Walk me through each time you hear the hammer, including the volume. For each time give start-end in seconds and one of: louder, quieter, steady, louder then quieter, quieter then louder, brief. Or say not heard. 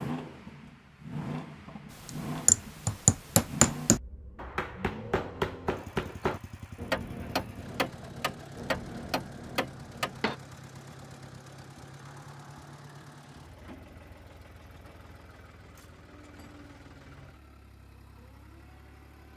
2.0-10.3 quieter.